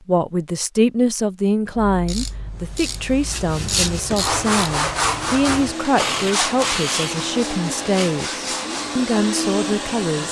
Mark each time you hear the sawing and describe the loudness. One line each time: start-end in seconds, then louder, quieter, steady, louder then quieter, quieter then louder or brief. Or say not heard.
3.2-8.9 quieter.